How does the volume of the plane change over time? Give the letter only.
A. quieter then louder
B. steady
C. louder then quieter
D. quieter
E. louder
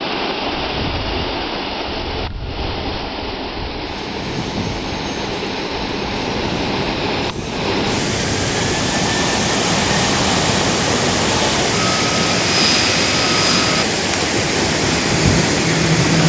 E.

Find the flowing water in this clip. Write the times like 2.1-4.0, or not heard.
0.0-16.2.